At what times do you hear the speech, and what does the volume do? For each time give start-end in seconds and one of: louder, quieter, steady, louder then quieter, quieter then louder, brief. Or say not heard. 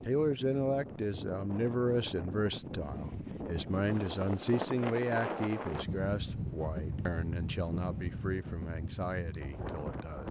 0.0-10.2 quieter.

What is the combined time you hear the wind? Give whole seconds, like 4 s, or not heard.
10 s.